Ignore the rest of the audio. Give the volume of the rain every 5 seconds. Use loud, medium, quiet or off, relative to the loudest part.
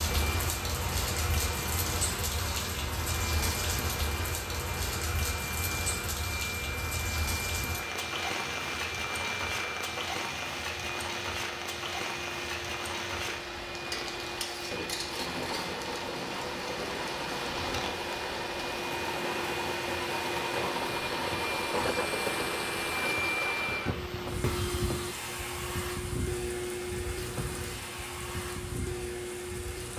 loud, loud, loud, medium, medium, quiet.